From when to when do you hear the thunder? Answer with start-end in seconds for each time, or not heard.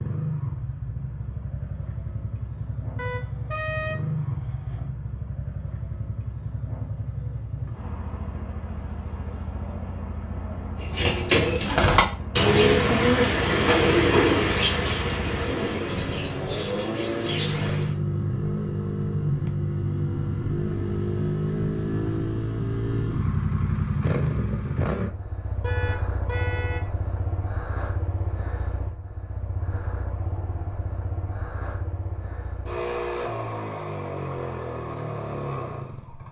not heard.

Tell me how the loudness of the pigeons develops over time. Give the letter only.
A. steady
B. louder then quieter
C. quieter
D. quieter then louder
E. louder
C.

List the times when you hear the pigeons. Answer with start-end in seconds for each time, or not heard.
10.8-17.9.